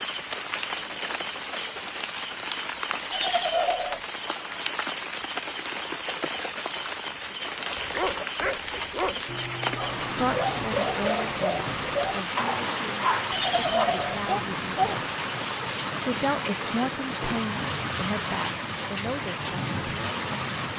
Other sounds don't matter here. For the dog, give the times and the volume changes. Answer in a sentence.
The dog can be heard from 7.8 to 15.4 s, getting louder.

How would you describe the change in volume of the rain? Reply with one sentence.
The volume of the rain stays about the same.